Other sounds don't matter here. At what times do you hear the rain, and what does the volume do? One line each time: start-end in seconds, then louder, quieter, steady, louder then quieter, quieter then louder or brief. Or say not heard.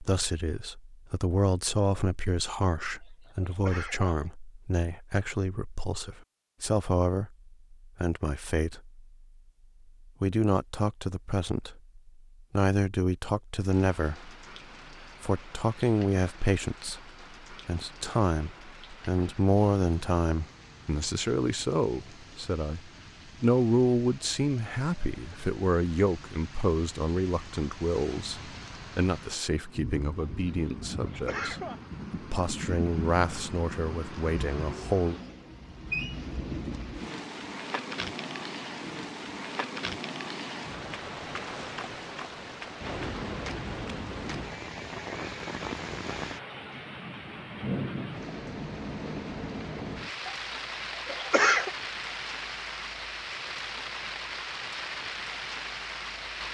13.7-56.4 louder.